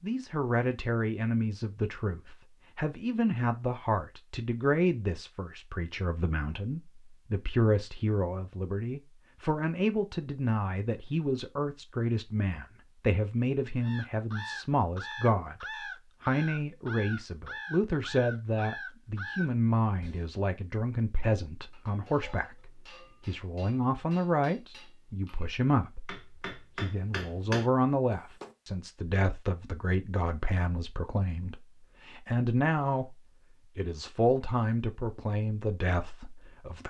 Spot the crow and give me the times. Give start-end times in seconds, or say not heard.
13.8-20.3.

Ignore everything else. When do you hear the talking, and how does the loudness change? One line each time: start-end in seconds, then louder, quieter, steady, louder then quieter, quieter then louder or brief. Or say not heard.
0.0-36.8 steady.